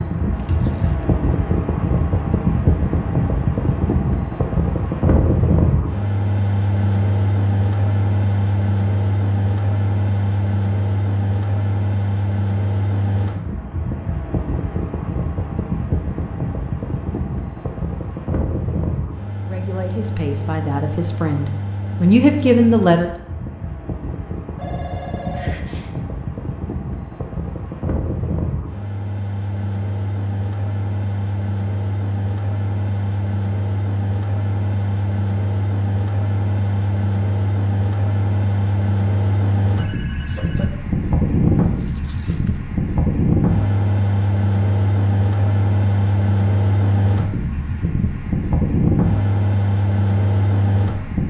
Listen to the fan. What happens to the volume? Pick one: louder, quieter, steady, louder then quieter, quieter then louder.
quieter then louder.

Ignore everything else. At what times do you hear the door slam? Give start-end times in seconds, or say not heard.
not heard.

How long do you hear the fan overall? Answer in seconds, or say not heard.
51 s.